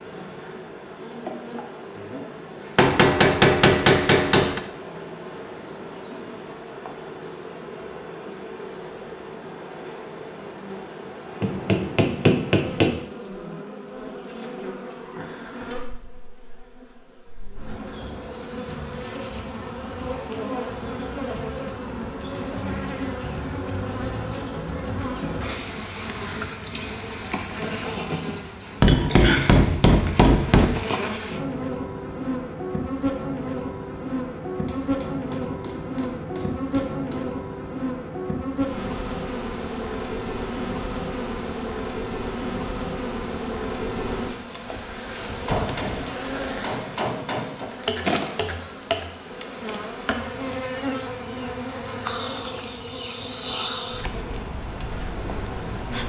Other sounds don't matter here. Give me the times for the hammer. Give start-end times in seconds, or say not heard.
2.8-4.6, 11.4-12.9, 28.8-30.6, 34.6-37.3, 45.3-47.8.